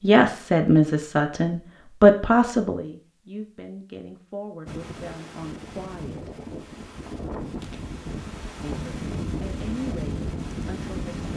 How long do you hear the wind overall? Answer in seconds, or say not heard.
7 s.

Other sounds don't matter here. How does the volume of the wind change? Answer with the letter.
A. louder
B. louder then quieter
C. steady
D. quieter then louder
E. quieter
A.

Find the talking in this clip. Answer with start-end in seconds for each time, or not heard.
0.0-6.3, 8.7-11.3.